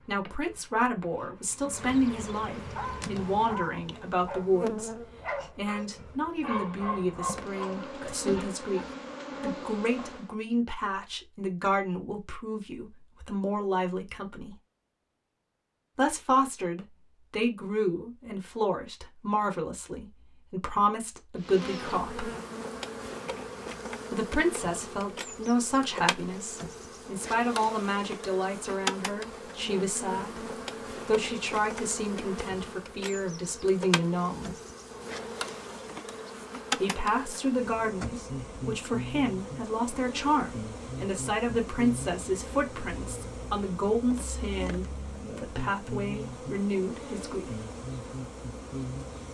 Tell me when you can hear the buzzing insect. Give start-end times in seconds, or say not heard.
0.0-10.3, 21.4-49.2.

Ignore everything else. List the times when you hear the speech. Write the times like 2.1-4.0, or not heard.
0.1-14.6, 15.9-22.3, 24.1-34.5, 36.8-47.5.